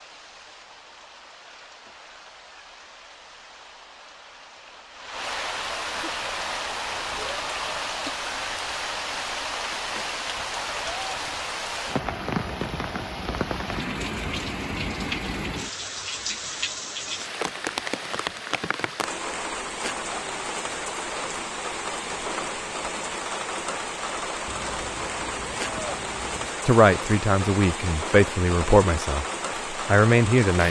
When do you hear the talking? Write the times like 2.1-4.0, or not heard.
26.6-30.6.